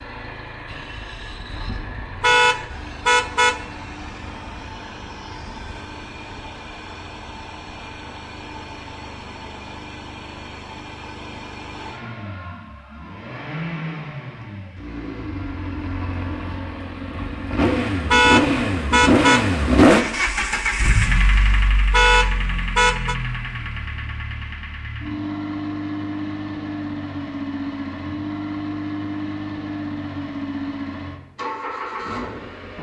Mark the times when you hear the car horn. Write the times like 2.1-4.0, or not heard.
2.2-3.6, 18.1-19.4, 21.9-23.1.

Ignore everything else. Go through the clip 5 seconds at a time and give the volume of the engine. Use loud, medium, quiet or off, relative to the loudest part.
quiet, quiet, quiet, loud, medium, medium, medium.